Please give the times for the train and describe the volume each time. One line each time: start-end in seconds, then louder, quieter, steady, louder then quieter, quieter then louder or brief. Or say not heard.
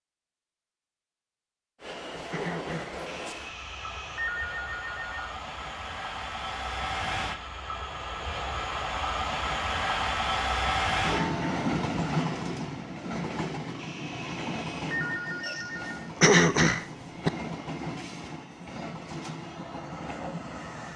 1.8-20.9 louder then quieter.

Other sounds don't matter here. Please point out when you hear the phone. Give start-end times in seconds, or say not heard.
3.0-5.3, 13.8-16.1.